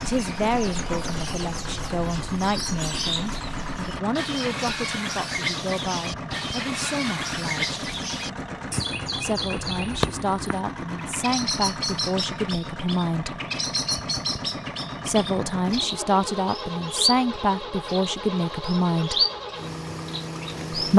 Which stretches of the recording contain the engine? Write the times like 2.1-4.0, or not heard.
0.0-20.9.